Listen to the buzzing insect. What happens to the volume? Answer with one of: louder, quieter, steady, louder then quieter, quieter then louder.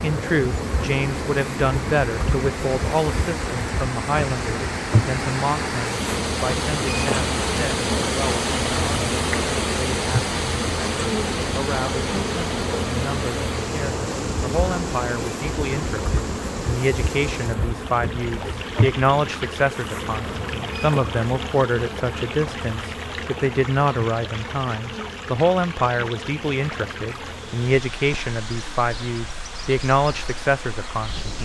quieter.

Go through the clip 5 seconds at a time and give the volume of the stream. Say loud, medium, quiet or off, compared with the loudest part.
medium, loud, loud, medium, medium, medium, medium.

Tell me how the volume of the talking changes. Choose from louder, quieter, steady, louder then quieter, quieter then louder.
quieter then louder.